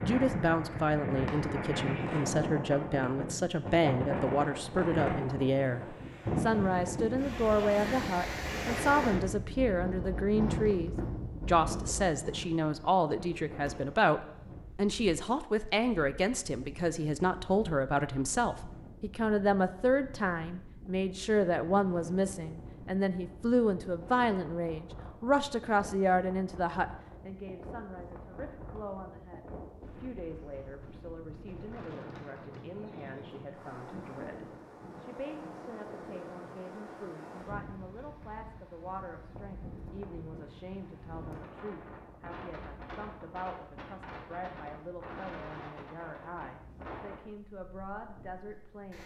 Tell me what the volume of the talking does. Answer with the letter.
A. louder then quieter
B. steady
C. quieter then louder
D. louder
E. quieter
E.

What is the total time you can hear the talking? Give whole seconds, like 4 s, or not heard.
49 s.